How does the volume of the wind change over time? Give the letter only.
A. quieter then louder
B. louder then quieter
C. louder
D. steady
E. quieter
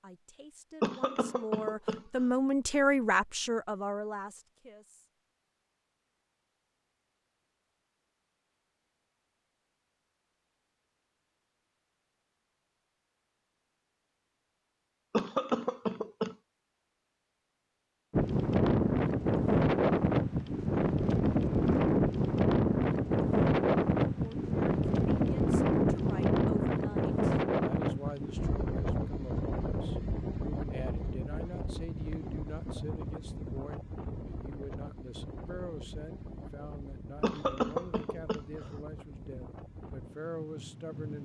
E.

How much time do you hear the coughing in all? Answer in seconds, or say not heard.
4 s.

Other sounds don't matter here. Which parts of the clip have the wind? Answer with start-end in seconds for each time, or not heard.
18.1-41.2.